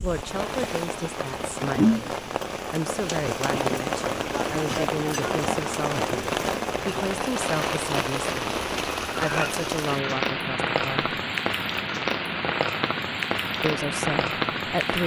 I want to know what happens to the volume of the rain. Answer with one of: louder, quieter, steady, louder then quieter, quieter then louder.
steady.